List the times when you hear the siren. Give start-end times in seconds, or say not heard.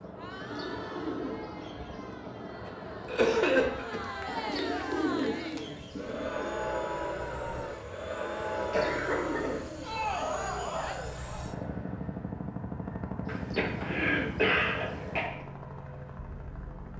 not heard.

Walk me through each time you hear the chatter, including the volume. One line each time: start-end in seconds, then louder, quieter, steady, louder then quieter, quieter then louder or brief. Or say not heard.
0.0-11.6 louder.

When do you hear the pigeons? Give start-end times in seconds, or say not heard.
0.3-2.5, 4.2-6.5, 8.7-10.2, 13.2-15.4.